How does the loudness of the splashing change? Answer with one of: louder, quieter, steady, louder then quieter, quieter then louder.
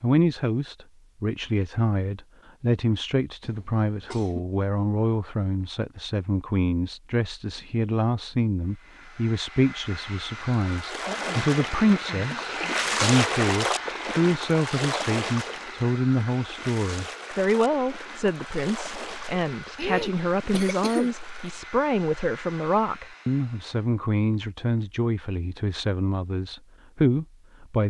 louder then quieter.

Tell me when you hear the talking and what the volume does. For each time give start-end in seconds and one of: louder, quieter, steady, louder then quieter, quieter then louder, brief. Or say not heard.
0.0-27.8 steady.